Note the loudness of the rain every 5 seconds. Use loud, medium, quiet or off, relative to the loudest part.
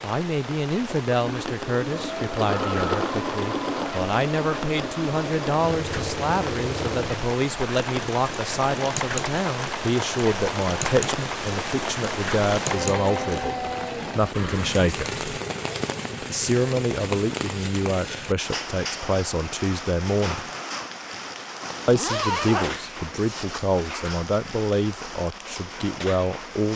medium, loud, loud, loud, medium, medium.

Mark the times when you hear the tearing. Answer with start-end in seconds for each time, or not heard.
not heard.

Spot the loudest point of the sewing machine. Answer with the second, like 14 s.
3 s.